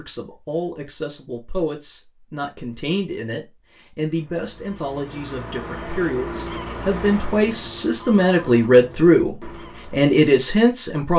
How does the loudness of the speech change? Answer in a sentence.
The loudness of the speech goes up.